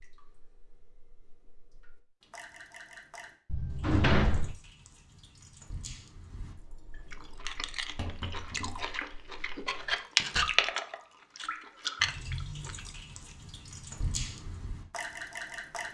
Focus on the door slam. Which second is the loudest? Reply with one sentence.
The volume of the door slam peaks at 4 seconds.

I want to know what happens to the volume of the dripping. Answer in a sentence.
The volume of the dripping goes up.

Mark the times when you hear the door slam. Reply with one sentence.
The door slam can be heard from 3.5 to 4.5 s and from 10.2 to 10.7 s.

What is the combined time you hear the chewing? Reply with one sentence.
The chewing can be heard for 6 seconds in total.